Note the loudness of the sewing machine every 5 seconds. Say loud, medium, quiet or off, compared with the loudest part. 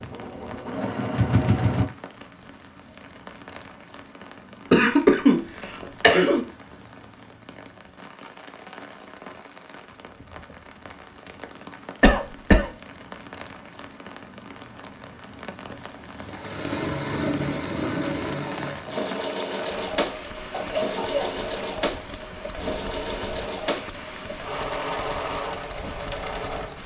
loud, off, off, loud, medium, medium.